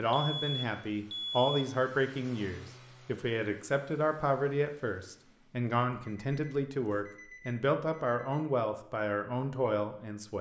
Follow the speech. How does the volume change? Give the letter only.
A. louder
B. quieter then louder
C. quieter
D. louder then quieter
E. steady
E.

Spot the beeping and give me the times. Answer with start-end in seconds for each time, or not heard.
0.1-1.6, 5.9-8.4.